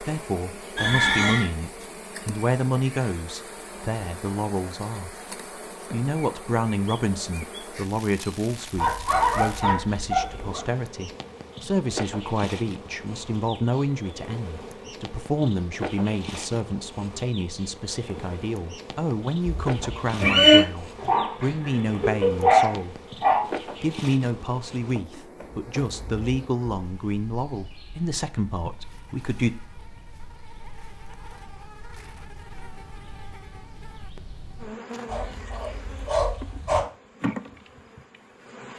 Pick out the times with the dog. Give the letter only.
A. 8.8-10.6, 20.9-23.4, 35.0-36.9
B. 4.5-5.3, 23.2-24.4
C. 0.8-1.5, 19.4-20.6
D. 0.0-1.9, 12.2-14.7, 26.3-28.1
A.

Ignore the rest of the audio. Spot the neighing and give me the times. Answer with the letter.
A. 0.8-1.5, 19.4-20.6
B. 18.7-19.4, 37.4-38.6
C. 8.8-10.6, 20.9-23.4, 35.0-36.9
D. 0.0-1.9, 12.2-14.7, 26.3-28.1
A.